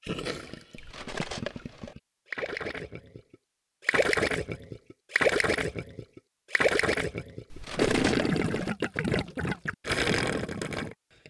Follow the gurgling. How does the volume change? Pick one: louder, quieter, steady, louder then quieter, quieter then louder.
louder.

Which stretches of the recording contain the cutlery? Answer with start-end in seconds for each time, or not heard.
0.8-1.9, 7.5-8.7.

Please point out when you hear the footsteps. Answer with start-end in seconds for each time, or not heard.
not heard.